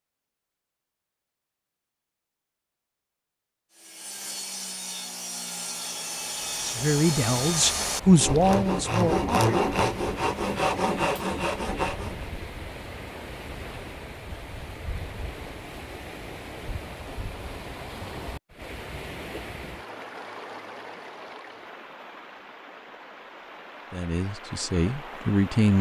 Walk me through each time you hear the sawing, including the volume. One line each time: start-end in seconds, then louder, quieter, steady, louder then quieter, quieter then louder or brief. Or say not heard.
3.8-12.3 louder.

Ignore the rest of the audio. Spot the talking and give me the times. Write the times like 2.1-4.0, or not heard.
6.7-9.3, 23.9-25.7.